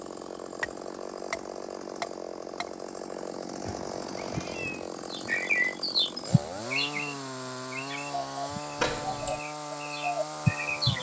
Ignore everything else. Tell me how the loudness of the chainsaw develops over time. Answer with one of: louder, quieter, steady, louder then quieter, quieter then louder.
steady.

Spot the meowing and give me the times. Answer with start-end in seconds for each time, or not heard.
3.6-4.9.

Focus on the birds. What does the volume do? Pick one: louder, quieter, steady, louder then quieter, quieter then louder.
quieter then louder.